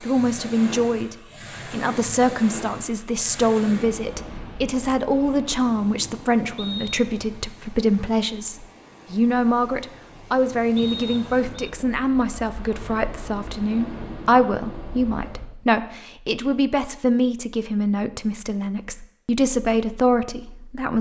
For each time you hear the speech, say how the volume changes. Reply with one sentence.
The speech can be heard from 0.0 to 20.9 s, at a steady volume.